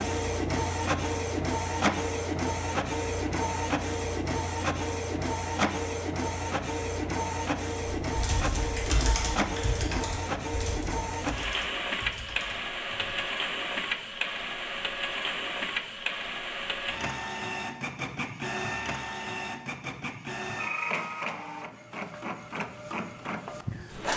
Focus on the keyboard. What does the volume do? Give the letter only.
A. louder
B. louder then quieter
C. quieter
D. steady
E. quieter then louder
C.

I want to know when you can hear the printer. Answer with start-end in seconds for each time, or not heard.
0.0-24.1.